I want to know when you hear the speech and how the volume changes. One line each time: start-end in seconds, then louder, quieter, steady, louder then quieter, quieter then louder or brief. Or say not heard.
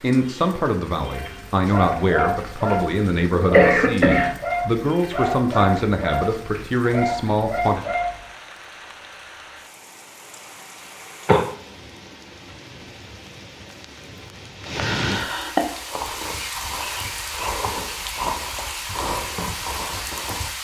0.0-7.9 steady.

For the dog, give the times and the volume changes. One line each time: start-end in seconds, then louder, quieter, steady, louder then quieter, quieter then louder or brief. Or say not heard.
1.1-8.2 steady.